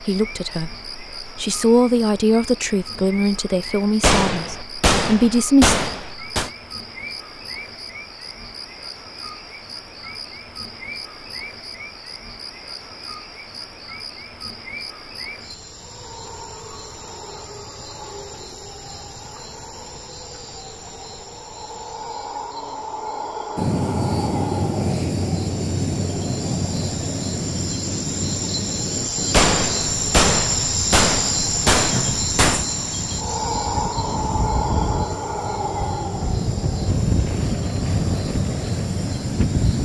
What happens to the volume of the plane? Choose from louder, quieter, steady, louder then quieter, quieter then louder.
quieter then louder.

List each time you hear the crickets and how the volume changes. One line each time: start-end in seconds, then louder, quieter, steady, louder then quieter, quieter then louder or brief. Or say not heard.
0.0-39.8 louder.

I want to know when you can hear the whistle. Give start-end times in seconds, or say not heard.
not heard.